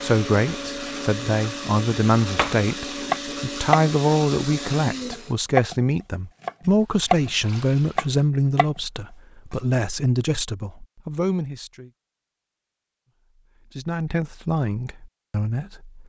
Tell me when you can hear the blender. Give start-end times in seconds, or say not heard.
0.0-5.3.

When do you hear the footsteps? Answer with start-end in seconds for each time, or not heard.
not heard.